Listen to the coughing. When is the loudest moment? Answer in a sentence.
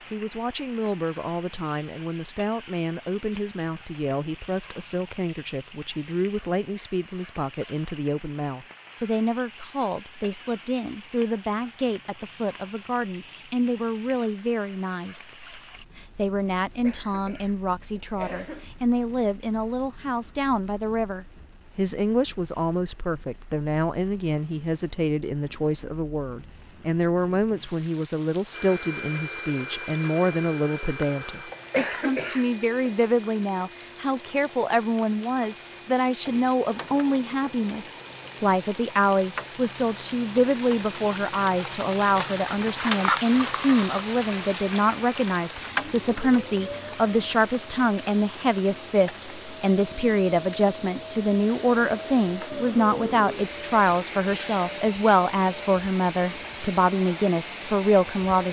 The volume of the coughing peaks at 32 seconds.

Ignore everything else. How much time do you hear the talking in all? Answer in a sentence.
The talking can be heard for 58 seconds in total.